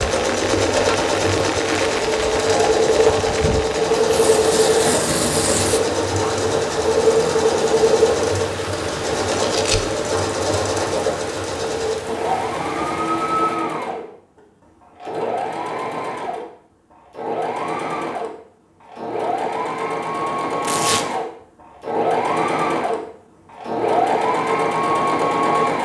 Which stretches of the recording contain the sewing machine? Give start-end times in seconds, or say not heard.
0.0-25.7.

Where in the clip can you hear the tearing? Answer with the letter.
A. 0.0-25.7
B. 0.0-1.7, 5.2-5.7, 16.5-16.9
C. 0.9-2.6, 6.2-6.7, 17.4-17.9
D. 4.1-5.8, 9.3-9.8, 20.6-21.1
D.